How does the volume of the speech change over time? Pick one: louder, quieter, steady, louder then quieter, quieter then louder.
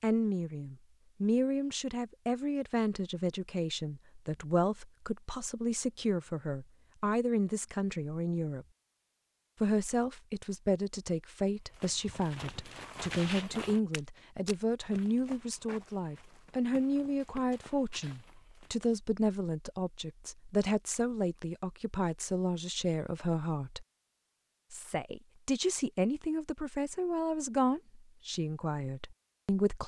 steady.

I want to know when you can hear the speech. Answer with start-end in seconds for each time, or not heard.
0.0-8.7, 9.6-23.9, 24.7-29.8.